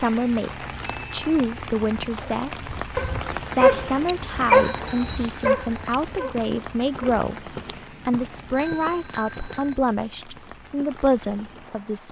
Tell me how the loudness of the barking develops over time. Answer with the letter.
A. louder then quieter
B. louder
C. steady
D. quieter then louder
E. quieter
A.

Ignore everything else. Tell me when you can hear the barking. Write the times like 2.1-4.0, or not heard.
2.2-7.2.